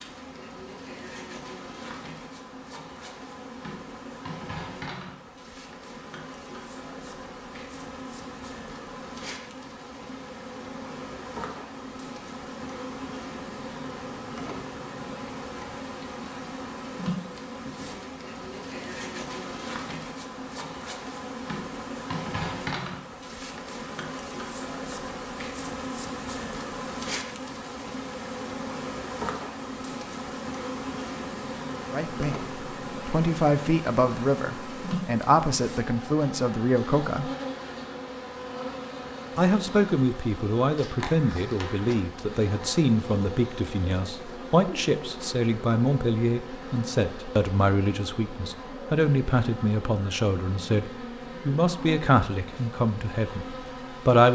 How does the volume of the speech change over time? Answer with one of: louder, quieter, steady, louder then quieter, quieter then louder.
steady.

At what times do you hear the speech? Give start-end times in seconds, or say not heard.
31.9-37.3, 39.4-54.2.